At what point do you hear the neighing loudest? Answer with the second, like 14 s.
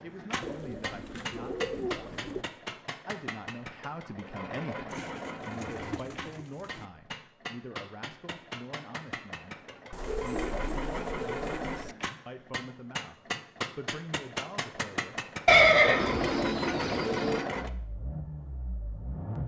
16 s.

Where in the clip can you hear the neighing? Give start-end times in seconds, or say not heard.
15.4-16.9.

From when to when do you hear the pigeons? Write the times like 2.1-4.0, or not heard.
0.4-2.5, 4.8-6.8, 9.9-11.9, 15.9-17.5.